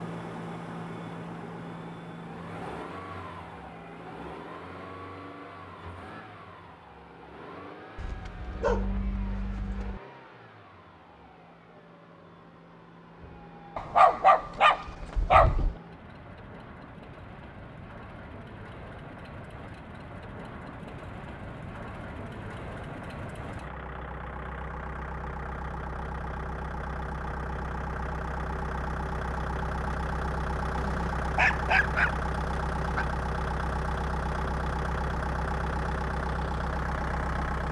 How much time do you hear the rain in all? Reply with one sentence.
The rain can't be heard in this clip.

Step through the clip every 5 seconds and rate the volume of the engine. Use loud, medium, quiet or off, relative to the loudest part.
medium, quiet, quiet, quiet, medium, loud, loud, loud.